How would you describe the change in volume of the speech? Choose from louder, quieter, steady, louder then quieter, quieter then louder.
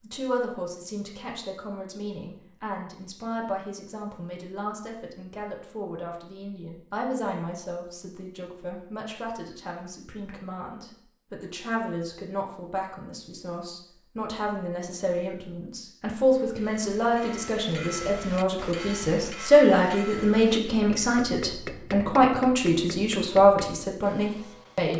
louder.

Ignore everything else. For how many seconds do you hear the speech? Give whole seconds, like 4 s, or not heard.
25 s.